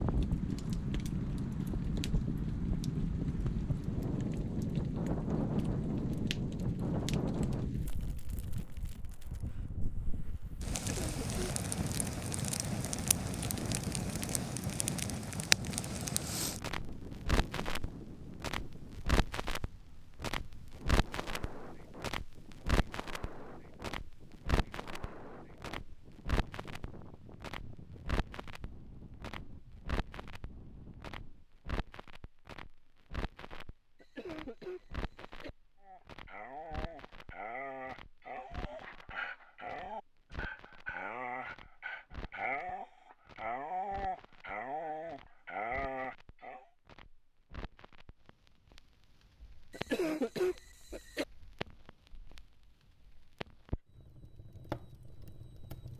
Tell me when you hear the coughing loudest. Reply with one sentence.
The volume of the coughing peaks at 50 seconds.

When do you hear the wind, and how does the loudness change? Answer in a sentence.
You can hear the wind from 0.0 to 31.4 s, getting quieter.